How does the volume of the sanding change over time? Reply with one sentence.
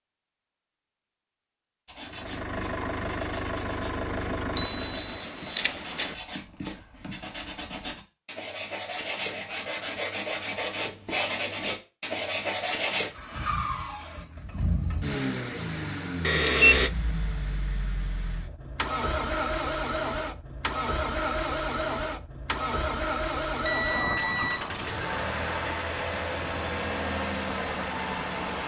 The loudness of the sanding goes up.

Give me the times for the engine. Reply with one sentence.
You can hear the engine from 2.0 to 5.3 s and from 13.1 to 28.6 s.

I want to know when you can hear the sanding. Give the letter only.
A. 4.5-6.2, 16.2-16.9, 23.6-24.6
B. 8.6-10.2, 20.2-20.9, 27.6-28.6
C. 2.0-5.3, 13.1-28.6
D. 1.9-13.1
D.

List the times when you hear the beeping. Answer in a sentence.
You can hear the beeping from 4.5 to 6.2 s, from 16.2 to 16.9 s and from 23.6 to 24.6 s.